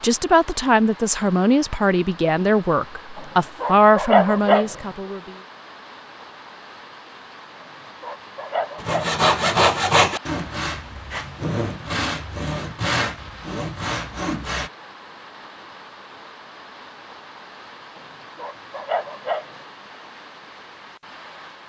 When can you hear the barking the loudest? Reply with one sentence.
The loudest moment of the barking is at 4 seconds.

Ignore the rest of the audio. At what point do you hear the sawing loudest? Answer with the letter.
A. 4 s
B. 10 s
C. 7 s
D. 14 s
B.